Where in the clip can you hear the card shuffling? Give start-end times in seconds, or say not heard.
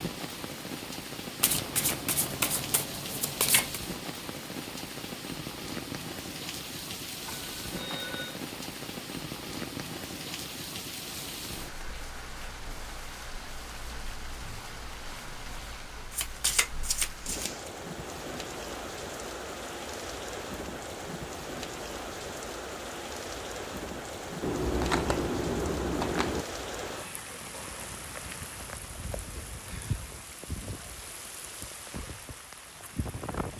1.4-3.8, 16.1-17.7, 24.4-26.4.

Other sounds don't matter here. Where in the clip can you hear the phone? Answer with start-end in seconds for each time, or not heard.
7.2-8.4.